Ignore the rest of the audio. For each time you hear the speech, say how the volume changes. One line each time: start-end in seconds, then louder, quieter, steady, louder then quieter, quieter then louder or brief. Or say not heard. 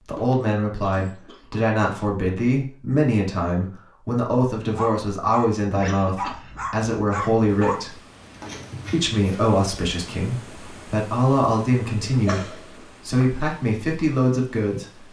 0.1-8.0 steady
8.9-15.0 steady.